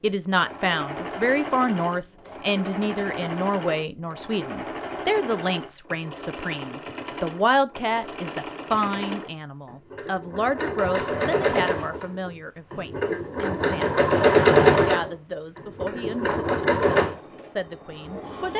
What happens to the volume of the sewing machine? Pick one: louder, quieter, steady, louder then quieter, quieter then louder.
louder.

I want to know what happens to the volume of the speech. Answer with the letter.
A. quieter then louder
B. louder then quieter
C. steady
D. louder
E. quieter
E.